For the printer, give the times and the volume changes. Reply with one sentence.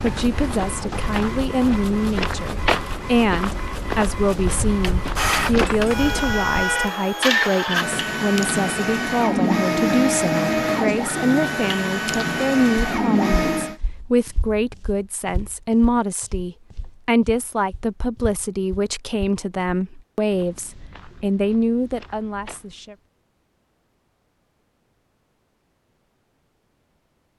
The printer can be heard from 0.0 to 13.8 s, getting louder.